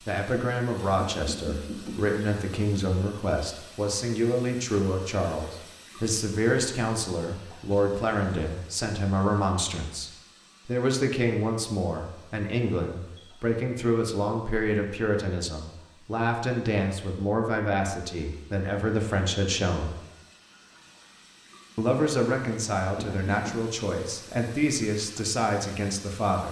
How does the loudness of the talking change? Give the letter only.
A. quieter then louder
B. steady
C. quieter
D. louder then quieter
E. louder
B.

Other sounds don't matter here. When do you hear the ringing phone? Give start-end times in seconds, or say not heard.
0.9-2.0, 22.9-23.6.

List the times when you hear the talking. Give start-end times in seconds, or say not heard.
0.1-19.9, 21.8-26.4.